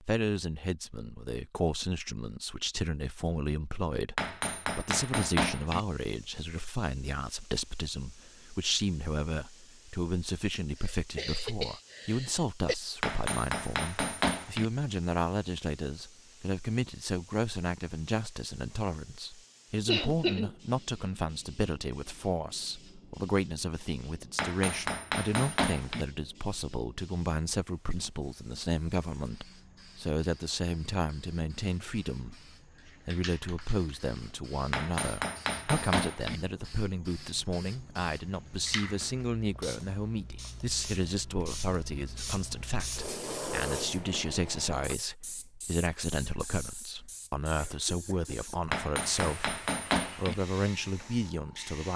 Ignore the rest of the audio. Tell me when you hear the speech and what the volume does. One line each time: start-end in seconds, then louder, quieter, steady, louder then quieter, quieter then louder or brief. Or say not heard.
0.0-51.9 steady.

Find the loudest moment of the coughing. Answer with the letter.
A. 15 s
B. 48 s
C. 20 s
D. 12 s
C.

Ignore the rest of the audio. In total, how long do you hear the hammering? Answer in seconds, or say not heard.
8 s.